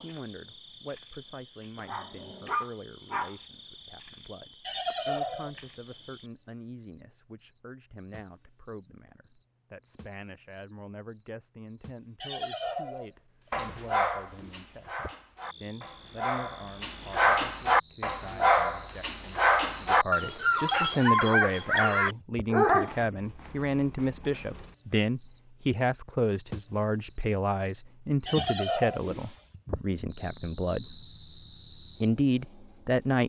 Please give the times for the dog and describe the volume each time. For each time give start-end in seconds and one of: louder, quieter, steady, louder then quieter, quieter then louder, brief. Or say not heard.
1.8-3.4 brief
13.5-22.9 louder.